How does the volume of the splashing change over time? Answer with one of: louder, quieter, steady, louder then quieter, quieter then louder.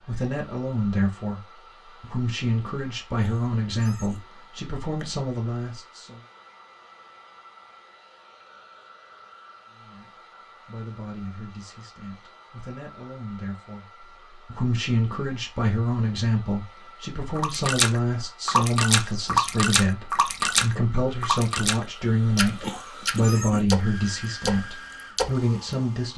quieter.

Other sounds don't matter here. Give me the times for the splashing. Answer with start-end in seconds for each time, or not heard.
17.4-25.6.